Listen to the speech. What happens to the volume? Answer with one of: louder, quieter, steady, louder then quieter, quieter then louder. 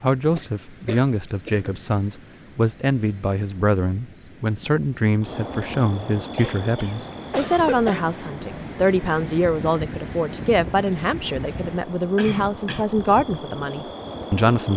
steady.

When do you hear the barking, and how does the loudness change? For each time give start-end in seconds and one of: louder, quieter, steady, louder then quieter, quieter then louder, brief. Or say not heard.
not heard.